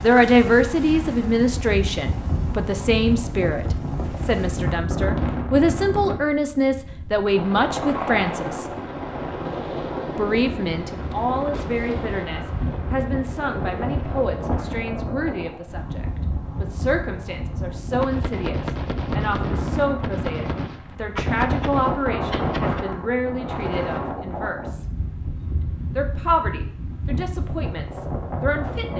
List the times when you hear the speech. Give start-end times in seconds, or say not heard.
0.0-8.7, 10.2-24.9, 25.9-28.9.